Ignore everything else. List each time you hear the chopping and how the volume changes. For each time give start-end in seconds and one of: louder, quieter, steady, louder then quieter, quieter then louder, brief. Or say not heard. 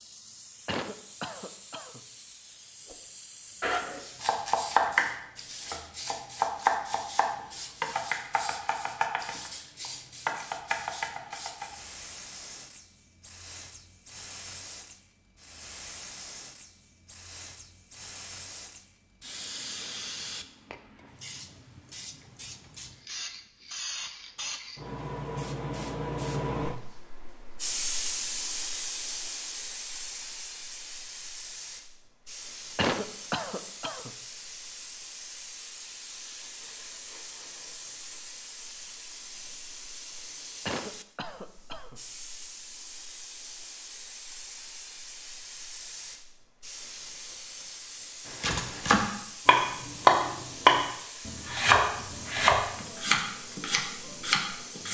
3.6-11.8 quieter
48.4-54.8 louder then quieter.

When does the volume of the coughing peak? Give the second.
33 s.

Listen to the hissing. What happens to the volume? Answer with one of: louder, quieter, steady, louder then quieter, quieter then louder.
louder then quieter.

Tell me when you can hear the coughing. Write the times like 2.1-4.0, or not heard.
0.7-2.0, 32.8-34.1, 40.6-42.0.